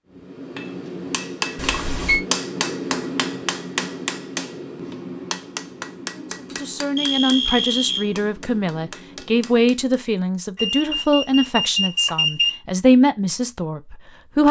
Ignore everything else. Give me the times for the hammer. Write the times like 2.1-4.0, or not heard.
0.1-9.9.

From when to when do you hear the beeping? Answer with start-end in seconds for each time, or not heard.
1.6-2.2, 6.5-8.1, 10.6-12.6.